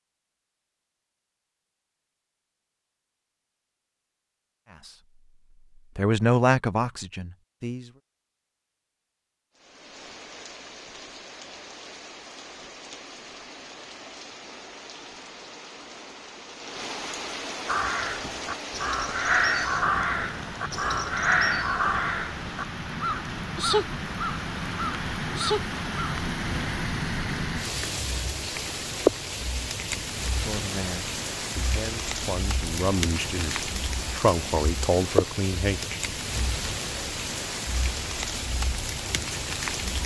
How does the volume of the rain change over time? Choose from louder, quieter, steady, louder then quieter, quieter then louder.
louder.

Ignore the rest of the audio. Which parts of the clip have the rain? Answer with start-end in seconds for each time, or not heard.
9.6-40.0.